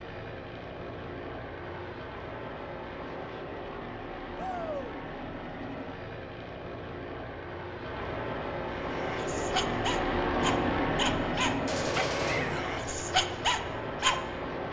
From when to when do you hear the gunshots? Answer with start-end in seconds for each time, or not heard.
11.7-12.7.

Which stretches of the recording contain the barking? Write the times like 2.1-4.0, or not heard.
8.8-14.2.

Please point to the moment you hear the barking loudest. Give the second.
13 s.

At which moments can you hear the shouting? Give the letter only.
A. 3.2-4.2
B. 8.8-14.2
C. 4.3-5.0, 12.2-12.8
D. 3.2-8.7
C.